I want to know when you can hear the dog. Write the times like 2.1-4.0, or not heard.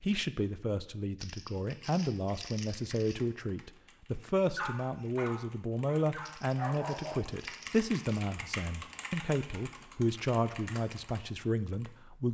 4.4-7.2.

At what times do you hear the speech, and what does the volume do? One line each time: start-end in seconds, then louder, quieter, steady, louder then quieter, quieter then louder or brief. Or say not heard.
0.0-12.2 steady.